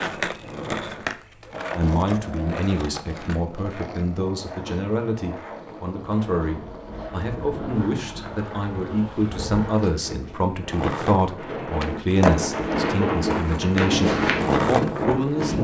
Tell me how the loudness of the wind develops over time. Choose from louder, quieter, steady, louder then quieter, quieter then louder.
louder.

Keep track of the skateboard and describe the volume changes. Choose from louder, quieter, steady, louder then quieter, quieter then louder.
quieter then louder.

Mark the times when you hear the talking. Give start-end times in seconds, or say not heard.
1.8-15.5.